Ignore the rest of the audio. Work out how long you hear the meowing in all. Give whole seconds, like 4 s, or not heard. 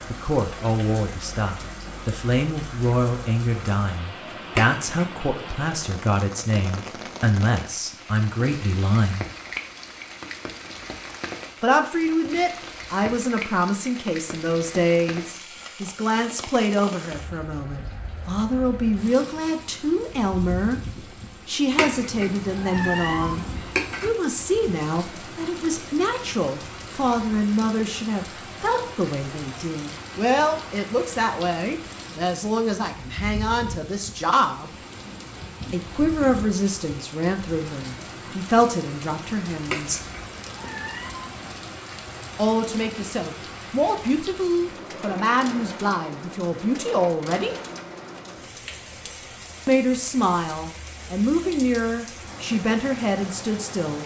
5 s.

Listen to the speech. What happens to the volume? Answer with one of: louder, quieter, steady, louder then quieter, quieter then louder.
steady.